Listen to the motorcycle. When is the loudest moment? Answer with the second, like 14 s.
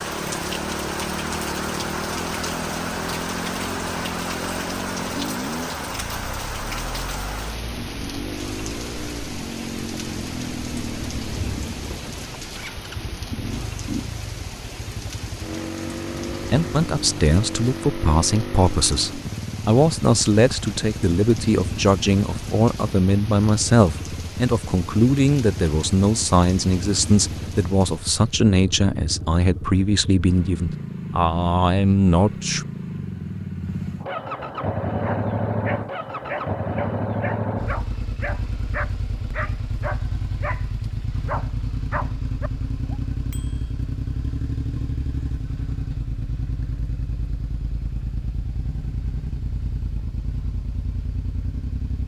35 s.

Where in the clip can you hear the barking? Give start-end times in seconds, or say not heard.
35.0-43.0.